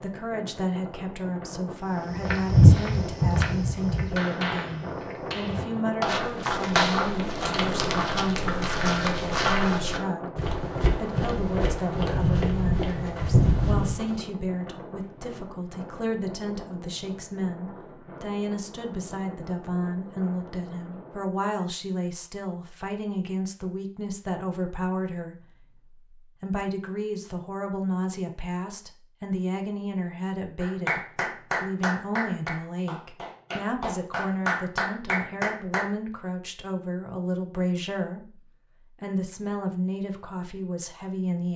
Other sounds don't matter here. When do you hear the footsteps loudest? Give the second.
3 s.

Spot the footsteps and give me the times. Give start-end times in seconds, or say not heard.
2.1-14.2.